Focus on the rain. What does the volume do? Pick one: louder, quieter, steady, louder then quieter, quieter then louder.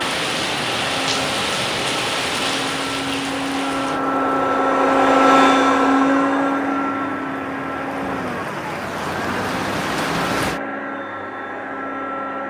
quieter then louder.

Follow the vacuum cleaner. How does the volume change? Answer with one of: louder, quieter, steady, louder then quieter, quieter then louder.
louder then quieter.